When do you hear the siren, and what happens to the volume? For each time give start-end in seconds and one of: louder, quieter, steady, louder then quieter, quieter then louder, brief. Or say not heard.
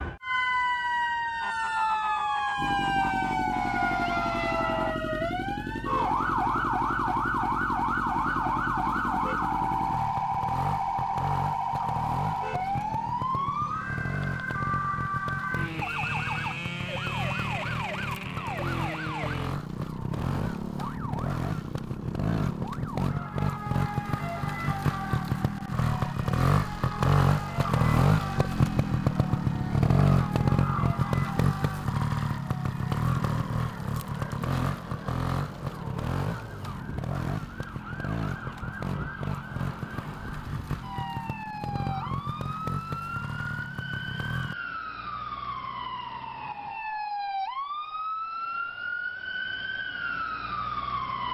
0.0-51.2 quieter then louder.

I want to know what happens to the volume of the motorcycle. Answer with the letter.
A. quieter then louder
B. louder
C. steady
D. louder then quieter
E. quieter
D.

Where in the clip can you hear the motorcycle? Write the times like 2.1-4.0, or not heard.
2.5-44.5.